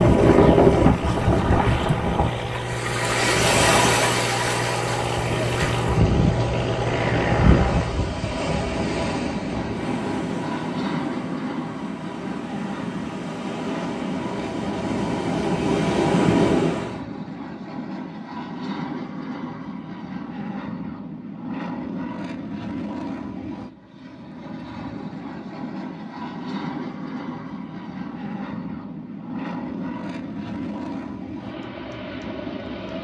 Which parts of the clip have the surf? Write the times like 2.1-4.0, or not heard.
0.0-17.0.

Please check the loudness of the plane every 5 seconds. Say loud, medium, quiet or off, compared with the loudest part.
loud, loud, loud, medium, medium, medium, medium.